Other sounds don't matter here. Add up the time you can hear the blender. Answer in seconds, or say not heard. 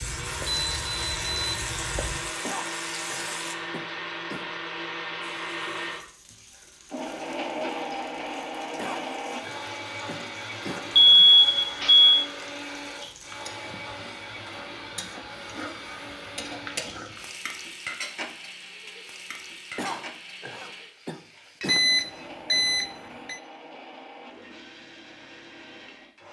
26 s.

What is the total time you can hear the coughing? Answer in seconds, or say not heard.
6 s.